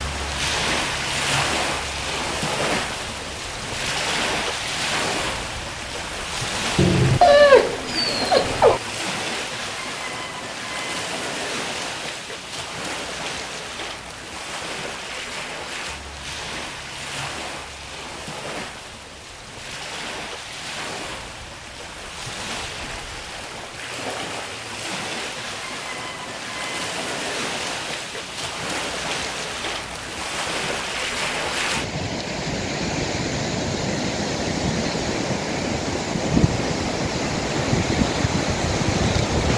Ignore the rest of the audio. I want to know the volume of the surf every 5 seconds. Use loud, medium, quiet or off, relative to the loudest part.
loud, medium, medium, medium, medium, medium, loud, loud.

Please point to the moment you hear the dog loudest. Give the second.
7 s.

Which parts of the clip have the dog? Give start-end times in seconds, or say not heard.
6.8-8.8.